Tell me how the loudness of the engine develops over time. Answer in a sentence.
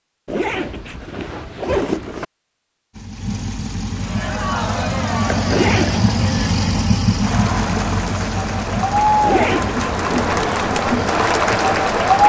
The volume of the engine goes up, then down.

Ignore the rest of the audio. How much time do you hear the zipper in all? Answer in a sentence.
The zipper can be heard for 4 seconds in total.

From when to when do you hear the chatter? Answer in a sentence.
You can hear the chatter from 4.0 to 12.2 s.